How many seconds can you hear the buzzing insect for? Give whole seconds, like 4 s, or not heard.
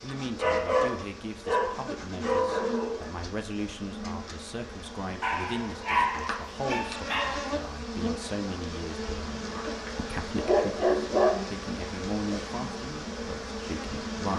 14 s.